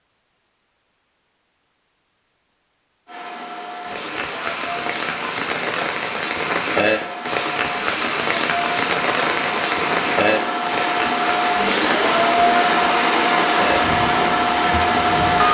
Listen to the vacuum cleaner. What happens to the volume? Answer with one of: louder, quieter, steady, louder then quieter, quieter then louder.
louder.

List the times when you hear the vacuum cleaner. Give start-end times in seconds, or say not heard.
3.0-15.4.